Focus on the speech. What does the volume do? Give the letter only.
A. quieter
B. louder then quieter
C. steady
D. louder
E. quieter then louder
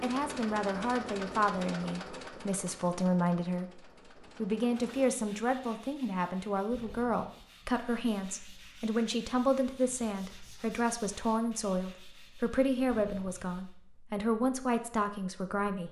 C.